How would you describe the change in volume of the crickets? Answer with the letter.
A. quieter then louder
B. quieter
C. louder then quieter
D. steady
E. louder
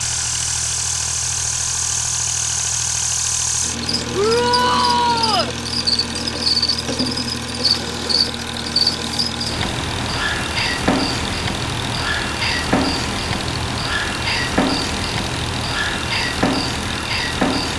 D.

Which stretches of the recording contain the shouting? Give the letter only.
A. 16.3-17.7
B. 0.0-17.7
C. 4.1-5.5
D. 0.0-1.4
C.